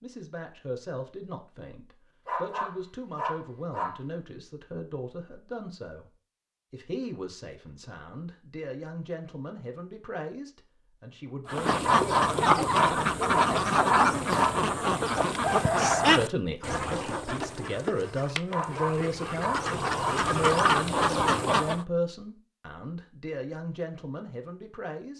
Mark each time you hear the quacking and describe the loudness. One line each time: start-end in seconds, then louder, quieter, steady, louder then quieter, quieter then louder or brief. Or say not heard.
11.4-21.9 quieter then louder.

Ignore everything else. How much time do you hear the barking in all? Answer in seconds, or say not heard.
7 s.